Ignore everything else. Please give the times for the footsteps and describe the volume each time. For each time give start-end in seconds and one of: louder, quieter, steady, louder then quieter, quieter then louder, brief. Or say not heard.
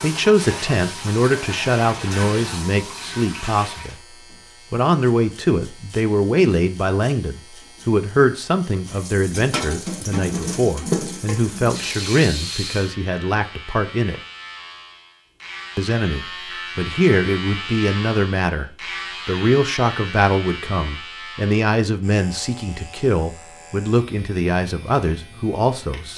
not heard.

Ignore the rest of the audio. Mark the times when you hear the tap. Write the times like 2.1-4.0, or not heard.
0.0-4.0, 8.8-12.9.